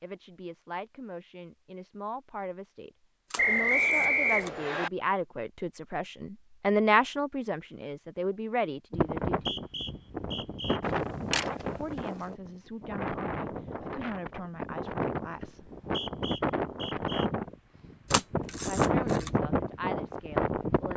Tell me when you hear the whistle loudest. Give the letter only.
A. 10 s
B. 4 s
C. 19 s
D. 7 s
B.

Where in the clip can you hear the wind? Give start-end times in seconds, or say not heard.
8.9-20.9.